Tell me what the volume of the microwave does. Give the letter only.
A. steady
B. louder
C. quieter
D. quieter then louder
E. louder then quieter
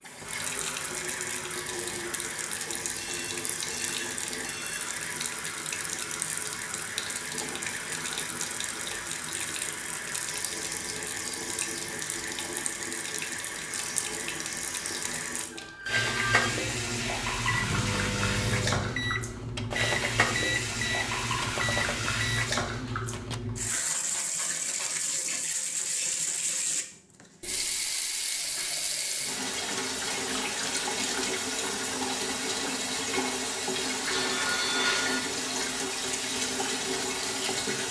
A.